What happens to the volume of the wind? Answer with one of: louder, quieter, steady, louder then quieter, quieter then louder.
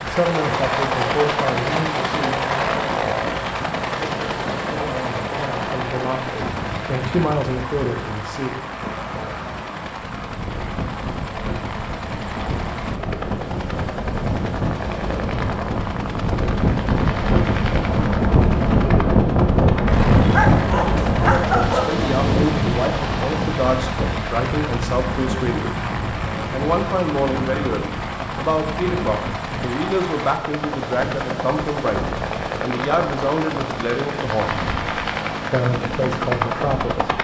louder then quieter.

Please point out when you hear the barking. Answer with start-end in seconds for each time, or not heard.
20.1-21.9.